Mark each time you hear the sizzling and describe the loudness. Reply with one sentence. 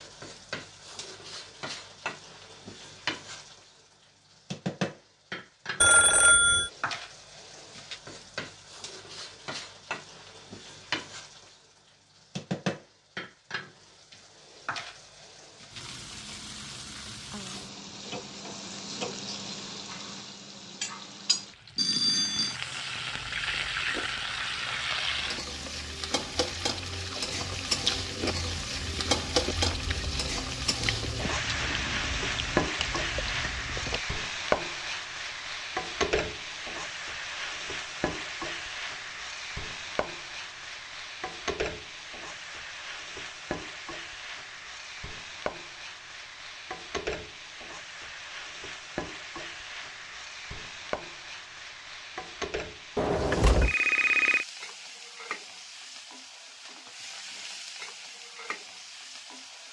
You can hear the sizzling from 0.0 to 59.6 s, getting louder then quieter.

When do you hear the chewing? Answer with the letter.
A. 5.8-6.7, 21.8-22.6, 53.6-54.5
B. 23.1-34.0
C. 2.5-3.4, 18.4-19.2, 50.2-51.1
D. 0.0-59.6
B.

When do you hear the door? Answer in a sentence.
You can hear the door from 53.0 to 53.8 s.